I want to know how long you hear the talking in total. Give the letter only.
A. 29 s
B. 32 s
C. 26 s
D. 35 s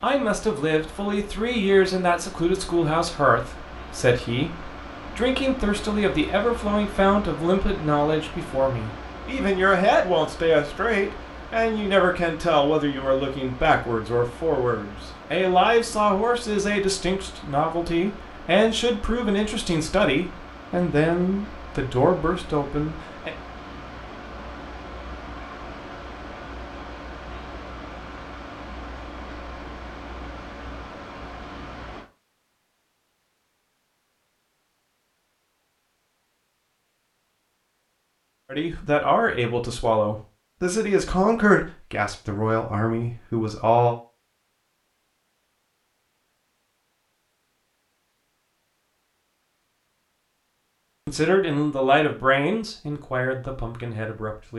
B.